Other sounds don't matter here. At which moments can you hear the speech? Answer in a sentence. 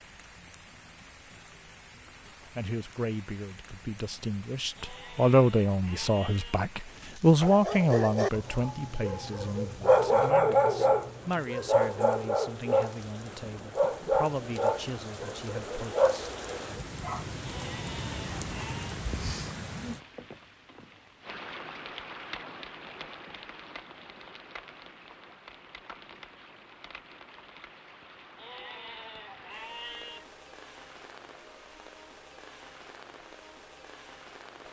The speech can be heard from 2.5 to 16.3 s.